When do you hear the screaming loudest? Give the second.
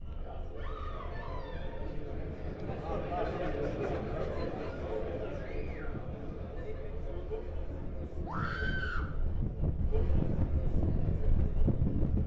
9 s.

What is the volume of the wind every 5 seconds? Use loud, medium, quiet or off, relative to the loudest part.
quiet, medium, loud.